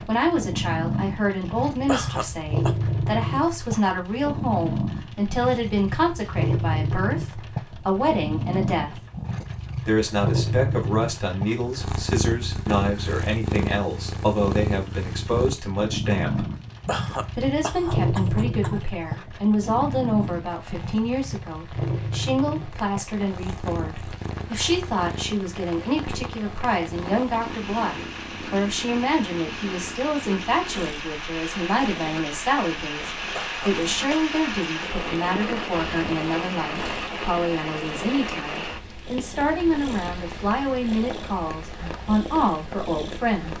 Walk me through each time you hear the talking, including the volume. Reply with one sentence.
The talking can be heard from 0.1 to 8.9 s, at a steady volume; from 9.8 to 16.4 s, at a steady volume; and from 17.4 to 43.5 s, at a steady volume.